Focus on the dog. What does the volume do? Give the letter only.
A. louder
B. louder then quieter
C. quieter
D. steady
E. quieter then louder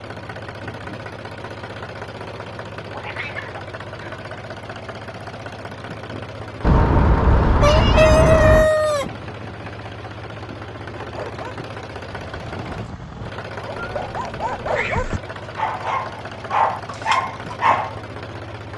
A.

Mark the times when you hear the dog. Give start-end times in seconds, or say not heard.
10.9-17.9.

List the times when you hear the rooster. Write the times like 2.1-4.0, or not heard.
7.6-9.1.